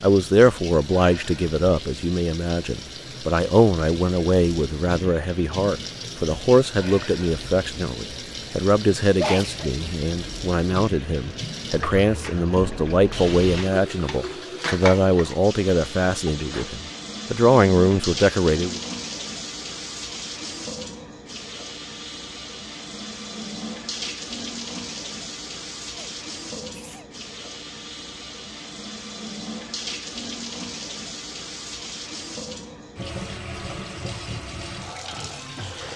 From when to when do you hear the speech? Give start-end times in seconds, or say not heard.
0.0-18.8.